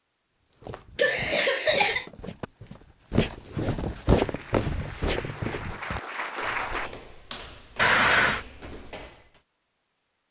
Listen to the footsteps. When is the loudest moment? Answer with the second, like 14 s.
4 s.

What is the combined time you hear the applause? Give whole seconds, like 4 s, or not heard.
3 s.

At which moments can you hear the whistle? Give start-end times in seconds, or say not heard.
not heard.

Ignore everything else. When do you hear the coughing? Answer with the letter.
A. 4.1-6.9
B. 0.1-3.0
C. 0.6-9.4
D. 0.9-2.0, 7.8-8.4
D.